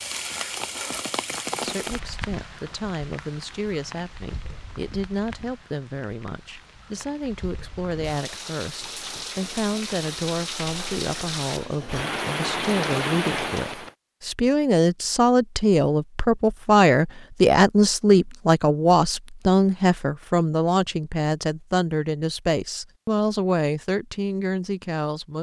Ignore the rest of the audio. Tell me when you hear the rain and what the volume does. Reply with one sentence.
The rain can be heard from 0.0 to 13.9 s, getting quieter then louder.